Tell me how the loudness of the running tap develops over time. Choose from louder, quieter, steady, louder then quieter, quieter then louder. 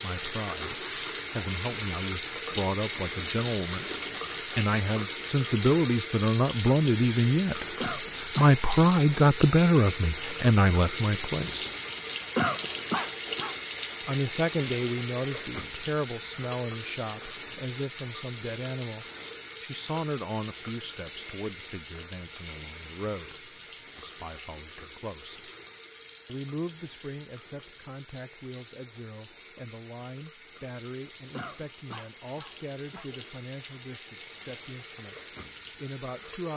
quieter.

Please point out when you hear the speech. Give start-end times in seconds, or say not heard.
0.0-11.7, 14.1-25.5, 26.2-36.5.